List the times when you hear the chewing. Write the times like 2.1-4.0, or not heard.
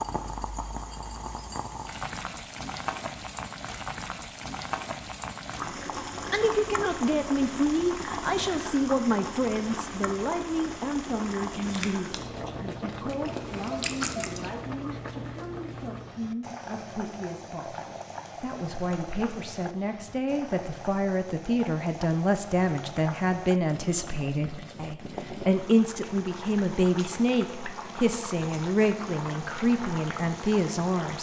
11.6-14.6.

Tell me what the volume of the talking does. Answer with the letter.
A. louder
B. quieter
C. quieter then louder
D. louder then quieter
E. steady
C.